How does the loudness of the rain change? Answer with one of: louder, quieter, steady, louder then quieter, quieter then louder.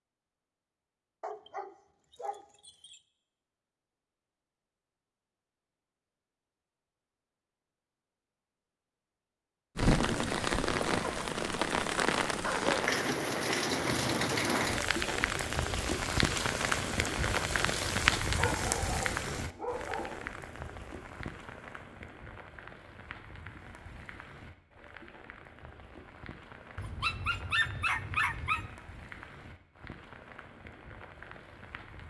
quieter.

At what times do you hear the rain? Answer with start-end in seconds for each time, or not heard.
9.8-32.0.